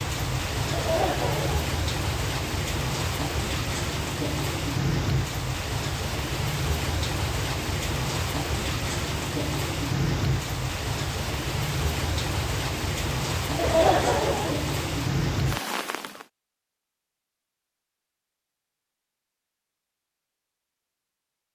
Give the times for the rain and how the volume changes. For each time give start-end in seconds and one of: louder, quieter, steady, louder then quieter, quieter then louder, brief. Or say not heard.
0.0-16.2 steady.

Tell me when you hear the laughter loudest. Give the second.
14 s.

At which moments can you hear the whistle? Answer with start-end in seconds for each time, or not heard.
not heard.